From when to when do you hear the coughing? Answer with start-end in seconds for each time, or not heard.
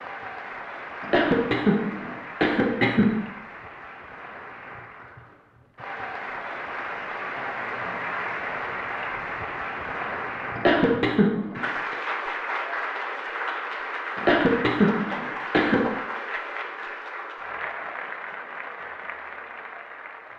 1.0-3.2, 10.6-11.9, 14.2-15.9.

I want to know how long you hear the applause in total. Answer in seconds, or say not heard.
20 s.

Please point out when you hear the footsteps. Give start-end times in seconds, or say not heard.
not heard.